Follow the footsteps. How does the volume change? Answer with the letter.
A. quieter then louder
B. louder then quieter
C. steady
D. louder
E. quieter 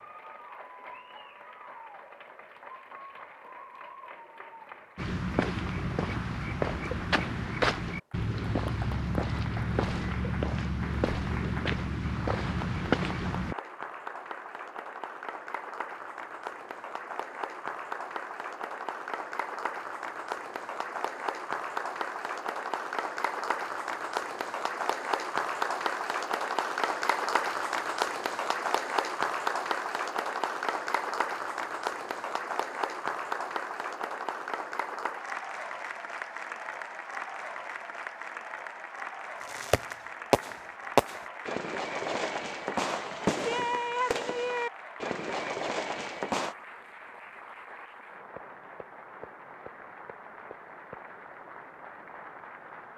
C.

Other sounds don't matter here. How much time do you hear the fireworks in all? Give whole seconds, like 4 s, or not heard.
7 s.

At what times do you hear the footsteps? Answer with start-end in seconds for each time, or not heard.
5.0-13.6.